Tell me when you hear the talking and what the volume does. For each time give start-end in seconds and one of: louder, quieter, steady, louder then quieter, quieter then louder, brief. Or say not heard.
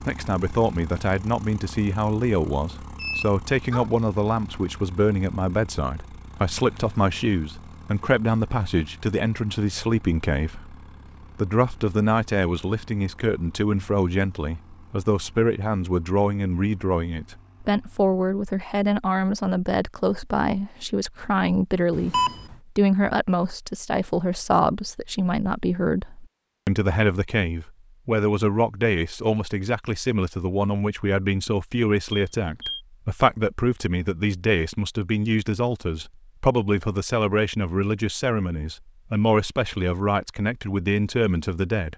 0.1-10.8 steady
11.3-41.9 steady.